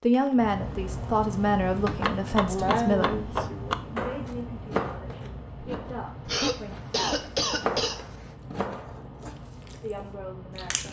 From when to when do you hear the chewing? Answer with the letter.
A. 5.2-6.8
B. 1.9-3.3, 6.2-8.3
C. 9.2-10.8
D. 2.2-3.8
C.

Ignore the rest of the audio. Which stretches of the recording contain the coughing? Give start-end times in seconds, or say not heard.
1.9-3.3, 6.2-8.3.